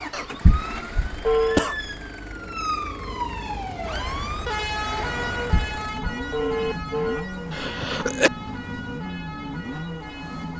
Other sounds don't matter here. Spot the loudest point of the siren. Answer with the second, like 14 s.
5 s.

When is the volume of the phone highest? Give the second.
1 s.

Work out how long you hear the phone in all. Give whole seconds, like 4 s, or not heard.
3 s.